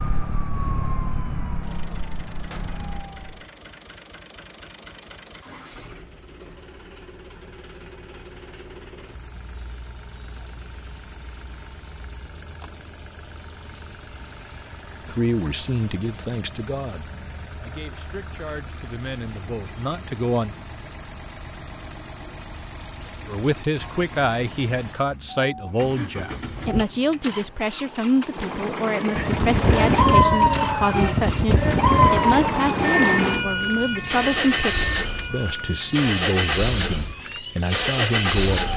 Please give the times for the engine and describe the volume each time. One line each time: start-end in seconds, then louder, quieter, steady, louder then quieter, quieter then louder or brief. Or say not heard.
1.6-38.7 louder.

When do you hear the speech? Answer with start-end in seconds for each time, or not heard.
15.1-20.6, 23.2-38.7.